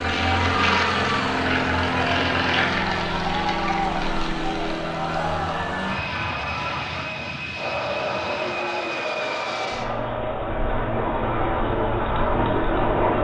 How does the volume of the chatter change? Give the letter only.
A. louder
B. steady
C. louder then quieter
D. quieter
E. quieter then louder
B.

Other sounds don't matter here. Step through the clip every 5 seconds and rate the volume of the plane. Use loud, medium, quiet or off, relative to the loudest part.
loud, medium, loud.